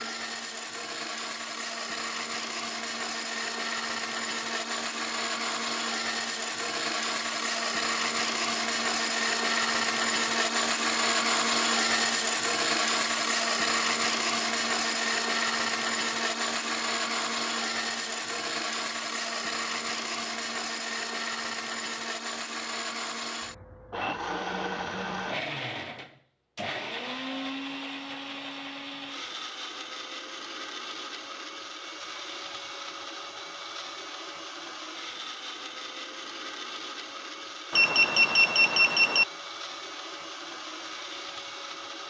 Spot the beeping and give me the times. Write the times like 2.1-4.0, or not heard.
37.7-39.2.